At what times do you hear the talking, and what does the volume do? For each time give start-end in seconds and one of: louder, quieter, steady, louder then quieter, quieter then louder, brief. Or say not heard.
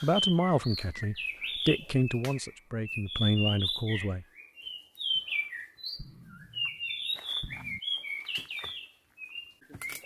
0.0-4.2 quieter then louder.